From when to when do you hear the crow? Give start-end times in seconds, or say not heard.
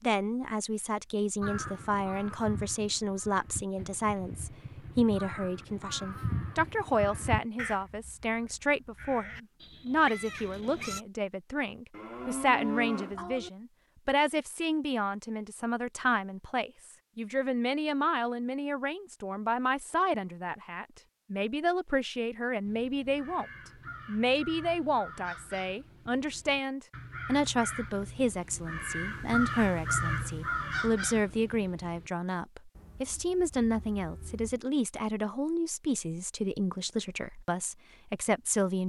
1.4-11.0, 22.6-32.1.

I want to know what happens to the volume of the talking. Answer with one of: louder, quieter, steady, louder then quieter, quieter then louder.
steady.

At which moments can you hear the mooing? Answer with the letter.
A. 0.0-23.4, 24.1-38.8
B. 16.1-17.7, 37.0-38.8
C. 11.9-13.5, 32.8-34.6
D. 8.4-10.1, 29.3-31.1
C.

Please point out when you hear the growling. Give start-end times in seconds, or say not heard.
not heard.